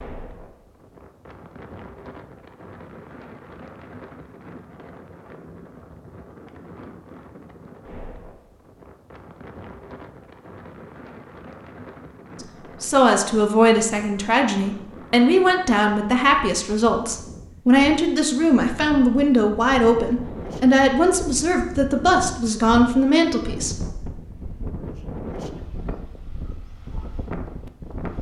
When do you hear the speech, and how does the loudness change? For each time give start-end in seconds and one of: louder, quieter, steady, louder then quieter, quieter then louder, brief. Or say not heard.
12.4-23.9 steady.